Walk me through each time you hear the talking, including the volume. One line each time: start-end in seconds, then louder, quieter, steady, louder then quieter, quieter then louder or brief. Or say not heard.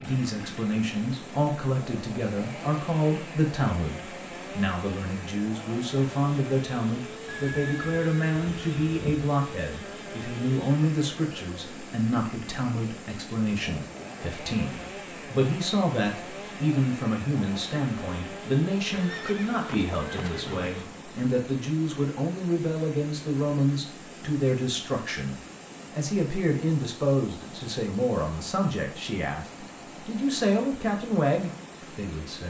0.0-32.4 steady.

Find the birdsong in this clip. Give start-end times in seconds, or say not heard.
not heard.